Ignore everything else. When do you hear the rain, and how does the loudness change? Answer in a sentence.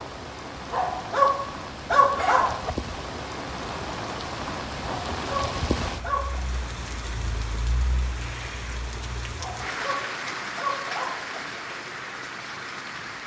The rain can be heard from 0.0 to 13.2 s, at a steady volume.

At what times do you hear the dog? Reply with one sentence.
You can hear the dog from 0.7 to 2.7 s, from 5.1 to 6.5 s and from 9.3 to 11.3 s.